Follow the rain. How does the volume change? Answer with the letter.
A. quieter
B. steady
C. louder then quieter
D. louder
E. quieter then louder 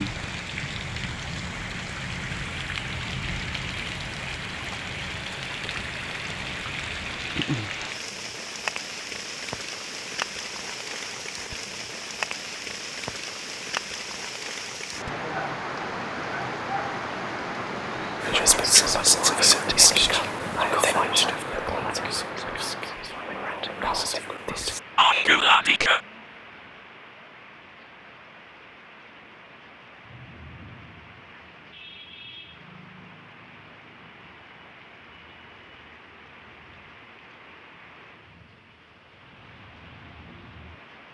A.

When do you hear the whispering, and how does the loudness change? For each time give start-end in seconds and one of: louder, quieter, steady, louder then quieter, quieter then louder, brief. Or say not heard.
18.2-26.0 quieter then louder.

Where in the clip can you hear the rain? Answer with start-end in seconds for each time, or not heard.
0.0-41.1.